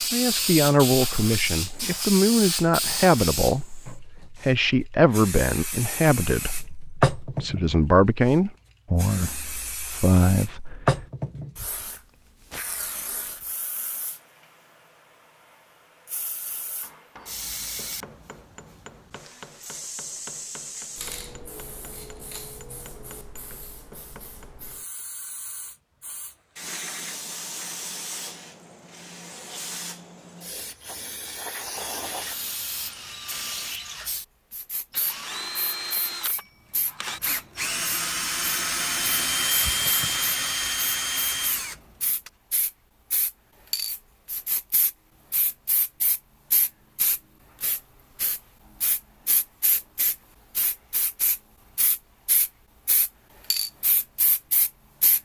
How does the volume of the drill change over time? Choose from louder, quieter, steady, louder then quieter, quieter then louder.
louder.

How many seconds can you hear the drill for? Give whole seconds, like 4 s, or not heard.
11 s.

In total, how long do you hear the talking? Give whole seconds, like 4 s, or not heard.
11 s.